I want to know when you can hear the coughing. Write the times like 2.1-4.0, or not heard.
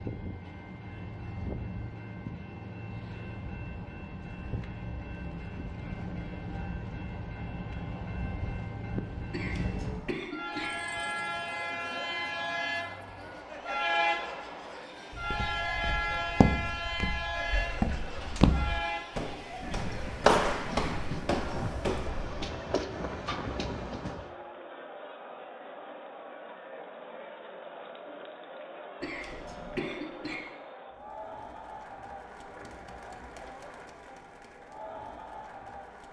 9.3-10.7, 29.0-30.4.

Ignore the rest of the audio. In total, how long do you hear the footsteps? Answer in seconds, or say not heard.
7 s.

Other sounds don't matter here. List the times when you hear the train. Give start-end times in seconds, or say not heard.
0.0-24.2.